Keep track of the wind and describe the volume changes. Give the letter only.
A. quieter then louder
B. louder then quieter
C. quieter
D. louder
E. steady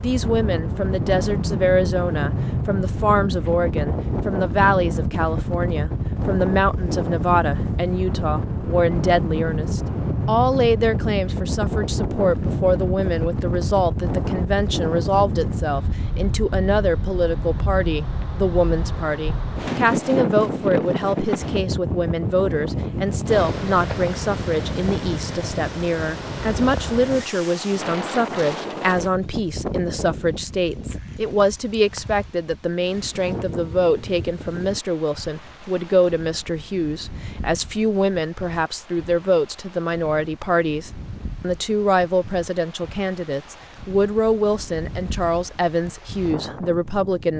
C.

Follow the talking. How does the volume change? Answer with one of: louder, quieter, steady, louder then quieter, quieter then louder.
steady.